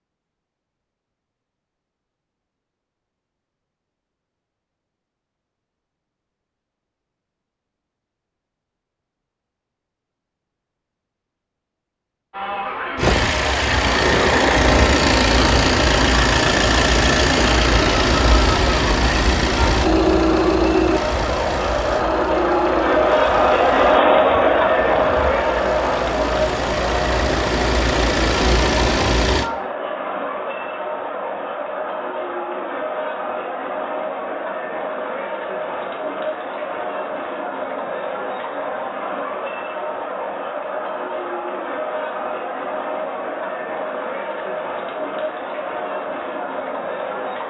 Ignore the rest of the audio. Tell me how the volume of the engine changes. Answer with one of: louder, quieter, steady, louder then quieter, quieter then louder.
quieter then louder.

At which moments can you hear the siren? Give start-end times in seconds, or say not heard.
not heard.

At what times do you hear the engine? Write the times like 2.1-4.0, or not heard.
12.9-29.5.